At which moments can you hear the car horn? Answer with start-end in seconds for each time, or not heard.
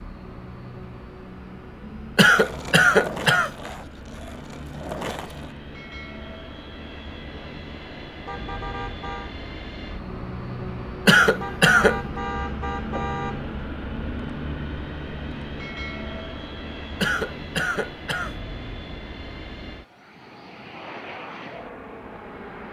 8.2-9.3, 11.4-13.6.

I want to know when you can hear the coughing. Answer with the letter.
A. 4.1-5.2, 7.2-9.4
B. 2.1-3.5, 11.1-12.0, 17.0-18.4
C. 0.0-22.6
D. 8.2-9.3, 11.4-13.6
B.